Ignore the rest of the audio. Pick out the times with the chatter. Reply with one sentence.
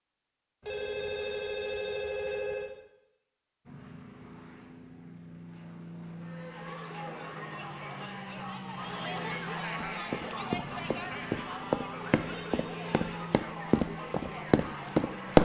You can hear the chatter from 6.1 to 15.3 s.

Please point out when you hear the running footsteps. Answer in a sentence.
The running footsteps can be heard from 9.8 to 15.3 s.